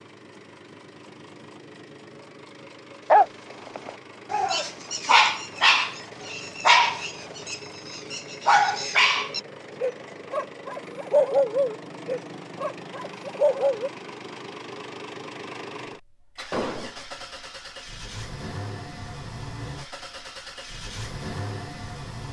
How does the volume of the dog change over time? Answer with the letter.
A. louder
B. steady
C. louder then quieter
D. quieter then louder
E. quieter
B.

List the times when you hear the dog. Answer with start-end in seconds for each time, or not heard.
3.1-13.9.